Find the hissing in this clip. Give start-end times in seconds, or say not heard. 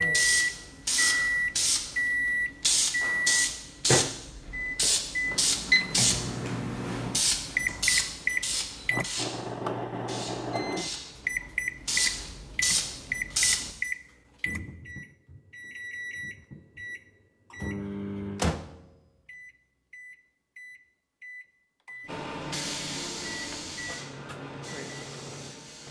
0.0-13.8, 22.1-25.8.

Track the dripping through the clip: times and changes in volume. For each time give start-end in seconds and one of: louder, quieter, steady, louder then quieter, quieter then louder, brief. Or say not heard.
not heard.